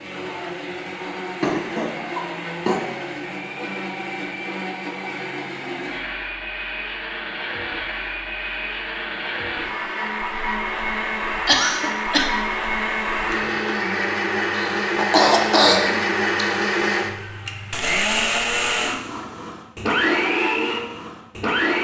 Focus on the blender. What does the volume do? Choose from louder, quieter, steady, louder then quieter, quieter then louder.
louder.